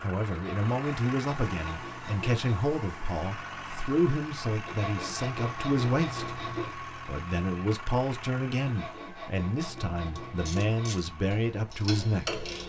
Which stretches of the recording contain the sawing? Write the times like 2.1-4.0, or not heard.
0.3-2.6, 4.7-6.8, 8.7-10.9.